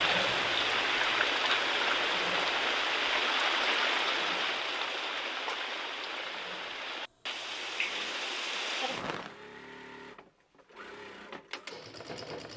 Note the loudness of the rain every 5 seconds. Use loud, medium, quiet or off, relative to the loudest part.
loud, medium, off.